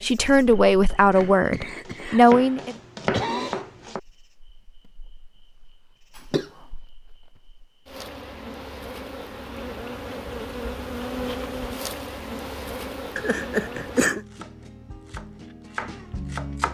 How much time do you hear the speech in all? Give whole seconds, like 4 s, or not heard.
3 s.